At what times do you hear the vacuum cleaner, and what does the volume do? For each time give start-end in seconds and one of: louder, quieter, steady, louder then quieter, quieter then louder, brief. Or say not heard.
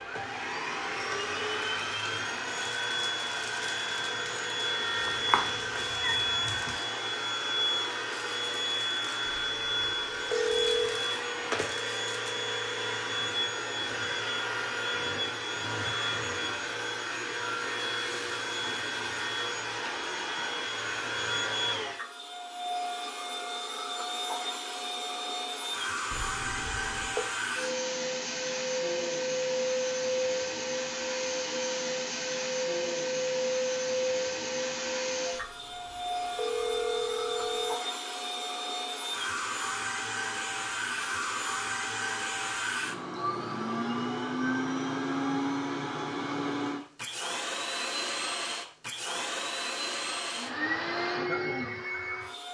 0.0-52.4 steady.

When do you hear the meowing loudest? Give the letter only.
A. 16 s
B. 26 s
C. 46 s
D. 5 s
D.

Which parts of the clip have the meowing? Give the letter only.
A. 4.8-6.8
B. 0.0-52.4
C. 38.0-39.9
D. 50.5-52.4
A.